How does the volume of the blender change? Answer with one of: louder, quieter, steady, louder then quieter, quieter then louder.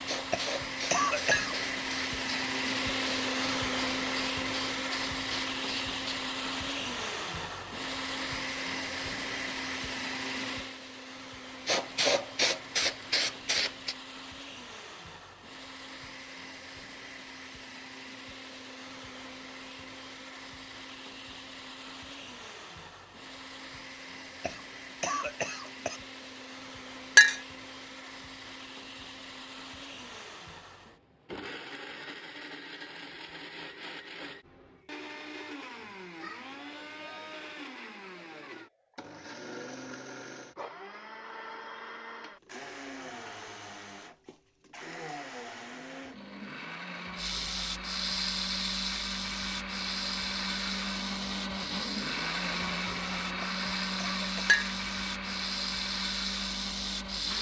quieter then louder.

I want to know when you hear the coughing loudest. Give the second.
1 s.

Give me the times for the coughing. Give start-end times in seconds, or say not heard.
0.3-1.6, 24.4-26.0, 53.4-54.6.